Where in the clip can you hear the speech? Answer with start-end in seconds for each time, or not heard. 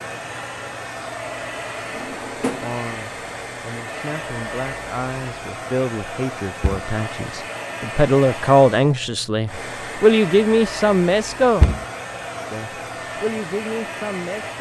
2.6-11.7, 12.5-14.5.